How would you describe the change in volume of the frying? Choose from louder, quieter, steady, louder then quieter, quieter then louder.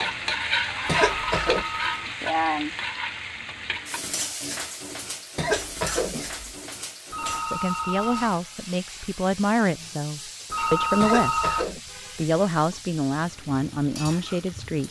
quieter.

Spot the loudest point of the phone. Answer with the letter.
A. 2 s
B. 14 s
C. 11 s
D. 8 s
C.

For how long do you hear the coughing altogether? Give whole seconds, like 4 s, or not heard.
3 s.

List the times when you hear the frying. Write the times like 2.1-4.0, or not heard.
0.0-14.8.